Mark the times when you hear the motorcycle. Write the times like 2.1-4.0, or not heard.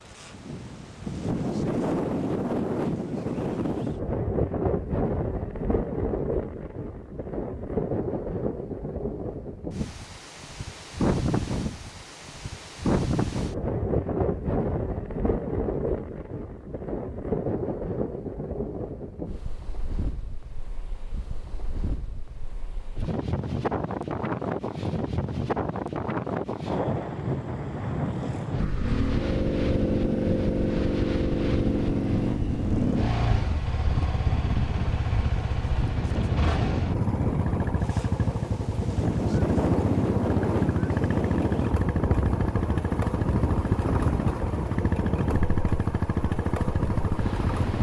28.6-47.7.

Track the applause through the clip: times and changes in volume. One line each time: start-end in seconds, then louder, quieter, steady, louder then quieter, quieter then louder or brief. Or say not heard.
not heard.